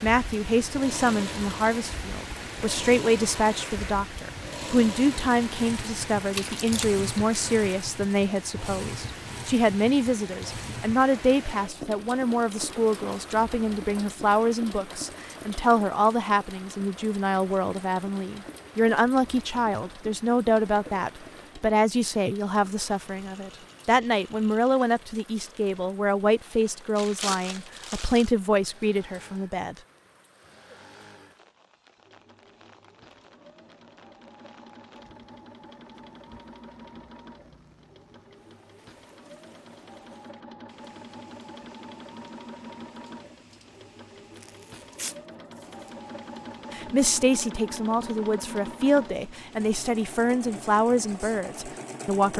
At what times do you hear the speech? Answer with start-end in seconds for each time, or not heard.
0.0-29.8, 46.7-52.3.